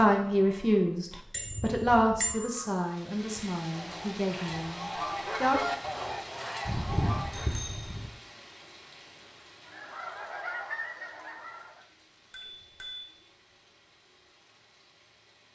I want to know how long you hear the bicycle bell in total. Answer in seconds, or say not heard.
3 s.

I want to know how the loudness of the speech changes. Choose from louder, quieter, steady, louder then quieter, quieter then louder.
quieter.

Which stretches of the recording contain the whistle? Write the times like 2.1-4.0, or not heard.
not heard.